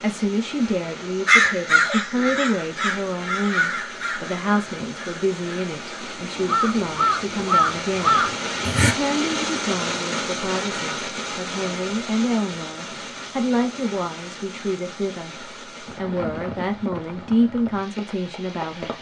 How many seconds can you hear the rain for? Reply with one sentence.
The rain can be heard for 19 seconds in total.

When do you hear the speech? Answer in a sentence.
The speech can be heard from 0.0 to 18.9 s.